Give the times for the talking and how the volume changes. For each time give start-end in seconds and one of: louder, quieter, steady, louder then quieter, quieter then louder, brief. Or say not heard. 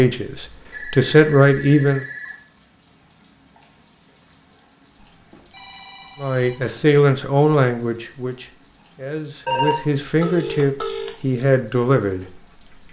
0.0-2.0 brief
6.2-12.8 quieter then louder.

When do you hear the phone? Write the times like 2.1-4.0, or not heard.
0.7-2.4, 5.1-6.8, 9.4-11.2.